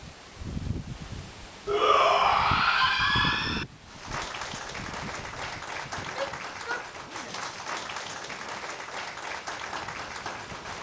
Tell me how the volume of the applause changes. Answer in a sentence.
The loudness of the applause stays about the same.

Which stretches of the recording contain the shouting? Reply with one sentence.
The shouting can be heard from 1.6 to 3.6 s and from 6.0 to 7.5 s.